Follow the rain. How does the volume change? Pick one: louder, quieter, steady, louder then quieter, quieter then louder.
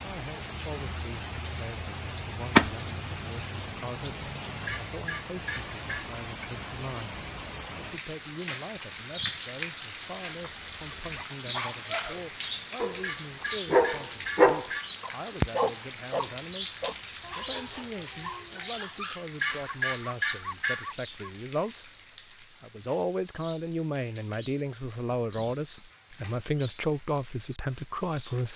quieter.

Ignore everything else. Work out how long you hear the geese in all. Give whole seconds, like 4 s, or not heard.
5 s.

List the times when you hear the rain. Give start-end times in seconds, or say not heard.
0.0-28.5.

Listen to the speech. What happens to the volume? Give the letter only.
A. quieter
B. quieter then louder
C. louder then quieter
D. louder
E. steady
D.